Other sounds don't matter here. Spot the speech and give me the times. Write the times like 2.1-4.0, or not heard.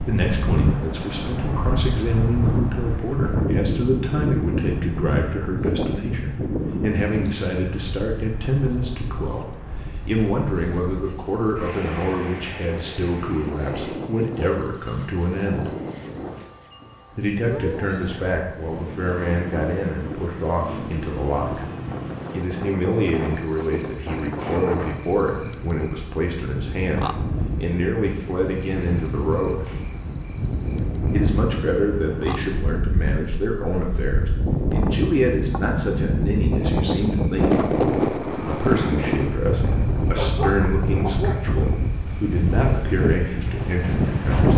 0.1-15.7, 17.1-21.6, 22.3-29.6, 31.1-37.6, 38.5-44.5.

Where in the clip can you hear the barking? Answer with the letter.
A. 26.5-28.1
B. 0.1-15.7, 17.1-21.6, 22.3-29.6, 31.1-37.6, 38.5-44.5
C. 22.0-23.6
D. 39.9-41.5
D.